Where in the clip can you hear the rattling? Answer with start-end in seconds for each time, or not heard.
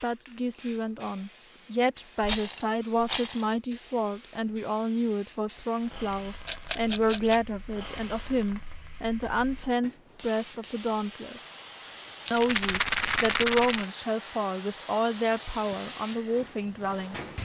2.2-3.5, 6.5-7.4, 12.2-13.8.